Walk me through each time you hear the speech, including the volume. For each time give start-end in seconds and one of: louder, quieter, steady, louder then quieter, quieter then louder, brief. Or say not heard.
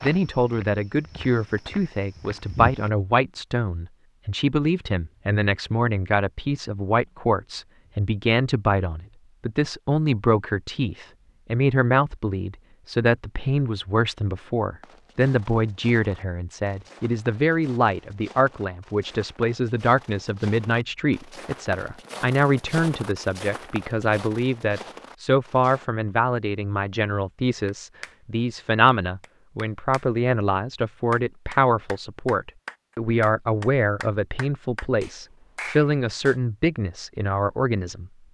0.0-38.1 steady.